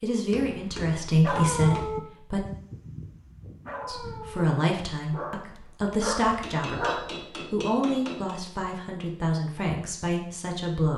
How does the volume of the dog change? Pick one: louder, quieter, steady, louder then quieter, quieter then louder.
quieter then louder.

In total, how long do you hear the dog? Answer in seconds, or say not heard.
6 s.